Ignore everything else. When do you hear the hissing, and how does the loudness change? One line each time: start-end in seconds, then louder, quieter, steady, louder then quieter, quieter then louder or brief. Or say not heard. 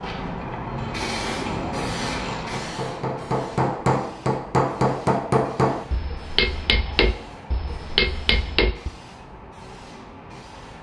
0.0-10.7 quieter.